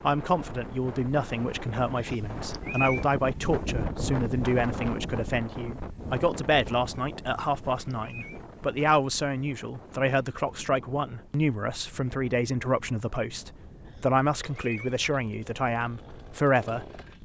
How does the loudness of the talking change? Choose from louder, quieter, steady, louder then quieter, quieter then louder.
steady.